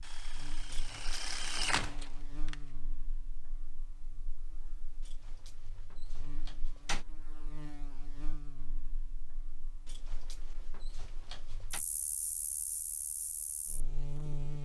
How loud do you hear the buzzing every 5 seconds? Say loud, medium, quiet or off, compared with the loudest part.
medium, medium, loud.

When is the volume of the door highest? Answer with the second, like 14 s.
7 s.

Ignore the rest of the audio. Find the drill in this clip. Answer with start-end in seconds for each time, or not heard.
0.0-2.7.